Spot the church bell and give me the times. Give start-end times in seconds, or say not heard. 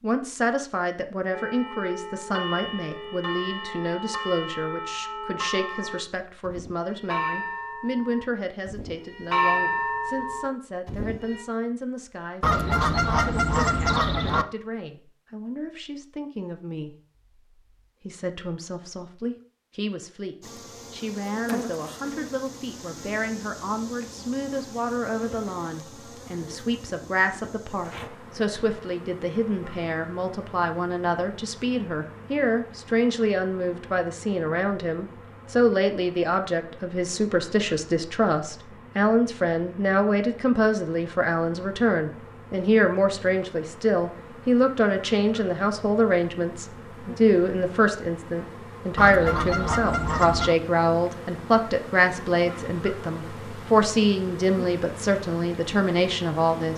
1.3-11.4.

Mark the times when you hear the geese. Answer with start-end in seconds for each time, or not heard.
12.4-14.4, 49.0-50.5.